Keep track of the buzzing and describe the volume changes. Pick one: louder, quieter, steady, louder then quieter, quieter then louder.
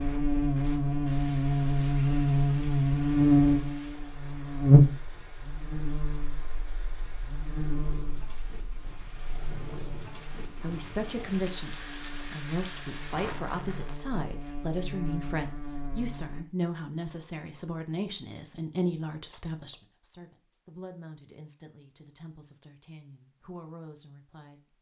quieter then louder.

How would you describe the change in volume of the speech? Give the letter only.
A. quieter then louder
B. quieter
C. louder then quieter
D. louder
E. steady
B.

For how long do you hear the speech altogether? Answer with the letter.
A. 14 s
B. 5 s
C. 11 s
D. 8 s
A.